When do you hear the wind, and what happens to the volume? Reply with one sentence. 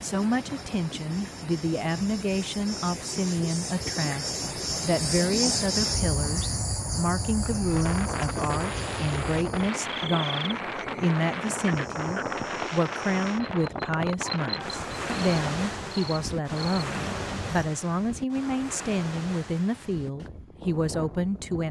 The wind can be heard from 7.5 to 21.6 s, getting quieter.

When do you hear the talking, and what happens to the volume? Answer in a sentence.
The talking can be heard from 0.0 to 21.6 s, at a steady volume.